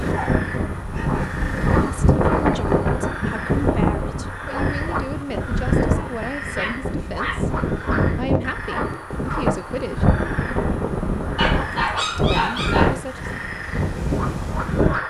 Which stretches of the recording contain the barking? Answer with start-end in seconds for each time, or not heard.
0.1-1.4, 6.0-7.8, 11.3-12.9.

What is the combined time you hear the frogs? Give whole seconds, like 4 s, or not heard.
15 s.